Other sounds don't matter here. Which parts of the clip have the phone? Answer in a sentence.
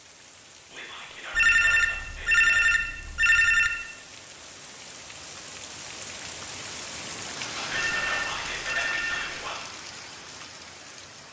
The phone can be heard from 1.3 to 3.7 s and from 7.7 to 9.3 s.